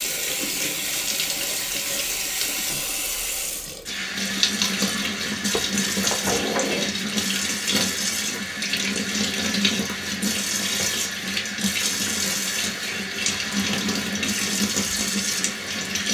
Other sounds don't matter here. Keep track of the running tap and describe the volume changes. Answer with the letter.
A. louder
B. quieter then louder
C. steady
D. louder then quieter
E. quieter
C.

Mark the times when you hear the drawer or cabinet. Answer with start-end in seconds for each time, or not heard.
5.5-7.0.